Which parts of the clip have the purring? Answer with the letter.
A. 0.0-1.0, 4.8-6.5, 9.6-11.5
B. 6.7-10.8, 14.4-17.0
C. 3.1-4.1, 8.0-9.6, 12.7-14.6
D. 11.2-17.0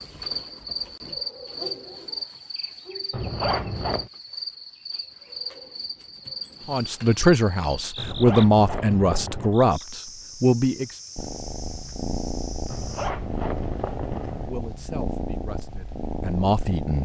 D.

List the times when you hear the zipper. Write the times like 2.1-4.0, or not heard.
3.1-4.1, 8.0-9.6, 12.7-14.6.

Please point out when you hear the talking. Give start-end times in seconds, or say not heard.
6.7-10.8, 14.4-17.0.